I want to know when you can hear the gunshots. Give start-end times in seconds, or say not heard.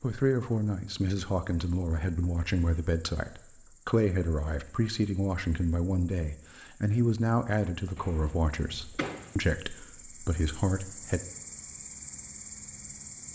8.0-9.3.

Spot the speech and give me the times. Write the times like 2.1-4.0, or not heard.
0.0-11.2.